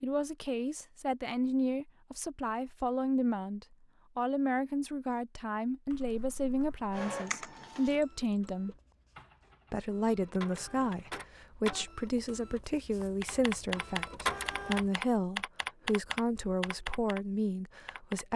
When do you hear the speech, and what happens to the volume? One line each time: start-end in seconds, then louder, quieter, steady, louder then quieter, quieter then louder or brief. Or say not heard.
0.0-8.8 steady
9.7-18.3 steady.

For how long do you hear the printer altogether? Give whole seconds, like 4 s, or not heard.
8 s.